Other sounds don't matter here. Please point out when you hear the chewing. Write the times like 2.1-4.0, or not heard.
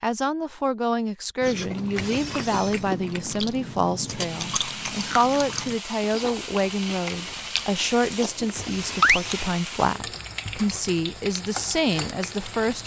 1.4-9.6.